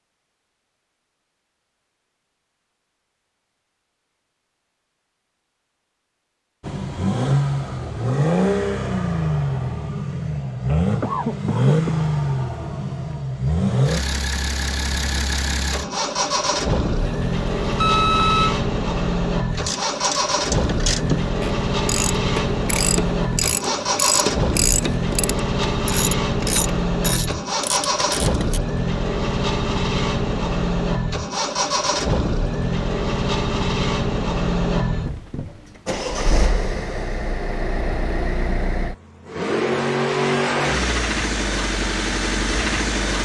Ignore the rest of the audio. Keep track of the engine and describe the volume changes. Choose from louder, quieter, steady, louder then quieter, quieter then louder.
steady.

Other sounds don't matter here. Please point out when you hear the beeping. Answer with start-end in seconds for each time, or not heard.
16.9-18.6.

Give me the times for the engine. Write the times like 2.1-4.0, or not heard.
6.6-43.2.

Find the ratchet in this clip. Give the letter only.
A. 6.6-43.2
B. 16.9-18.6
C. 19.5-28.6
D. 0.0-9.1
C.